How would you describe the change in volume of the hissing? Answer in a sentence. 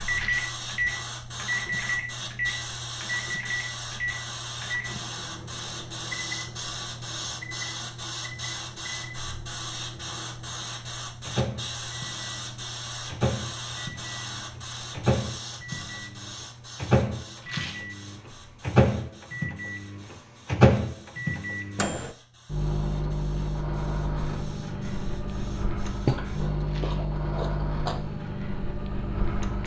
The volume of the hissing goes down.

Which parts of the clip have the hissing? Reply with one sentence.
The hissing can be heard from 0.0 to 26.5 s.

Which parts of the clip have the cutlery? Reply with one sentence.
The cutlery can't be heard in this clip.